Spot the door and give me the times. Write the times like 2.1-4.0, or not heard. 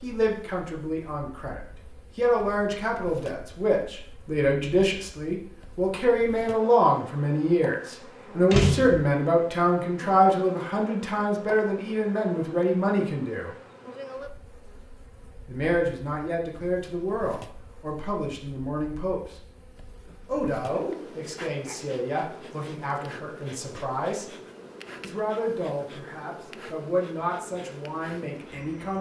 8.5-9.1.